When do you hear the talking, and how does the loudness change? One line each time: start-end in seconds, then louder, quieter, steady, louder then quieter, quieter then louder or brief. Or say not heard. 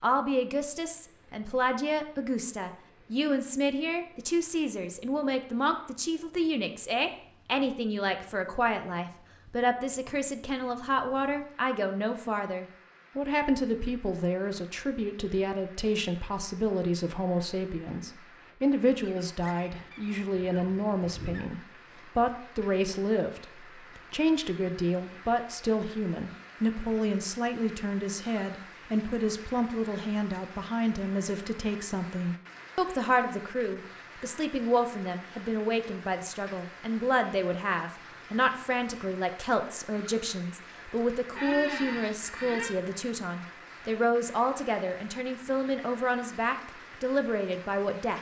0.0-48.1 steady.